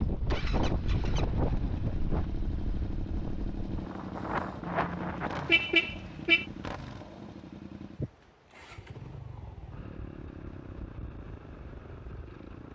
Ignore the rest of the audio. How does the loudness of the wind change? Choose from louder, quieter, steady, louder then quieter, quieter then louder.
quieter then louder.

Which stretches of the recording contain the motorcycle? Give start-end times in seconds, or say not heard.
0.0-12.6.